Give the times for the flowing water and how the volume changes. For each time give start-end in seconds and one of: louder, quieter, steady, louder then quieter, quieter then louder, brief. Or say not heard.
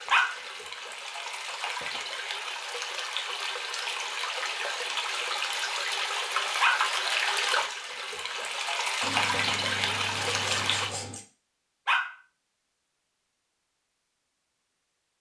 0.0-10.9 louder.